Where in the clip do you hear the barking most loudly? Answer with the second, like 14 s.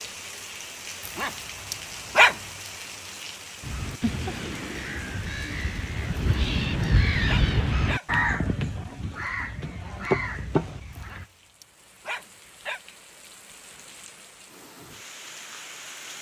2 s.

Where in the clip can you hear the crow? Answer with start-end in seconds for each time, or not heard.
3.6-11.2.